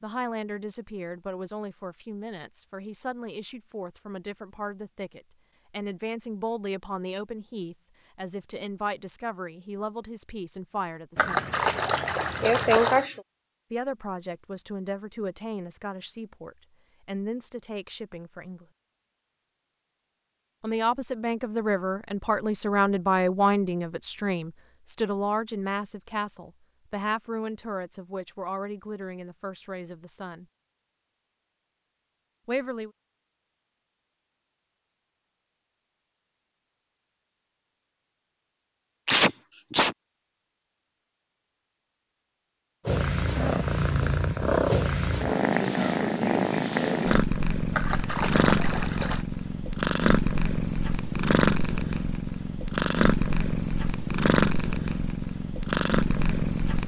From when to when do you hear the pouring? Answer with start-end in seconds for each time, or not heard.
11.2-13.1, 47.7-49.2.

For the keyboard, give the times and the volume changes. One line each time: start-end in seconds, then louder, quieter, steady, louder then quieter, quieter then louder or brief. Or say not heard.
not heard.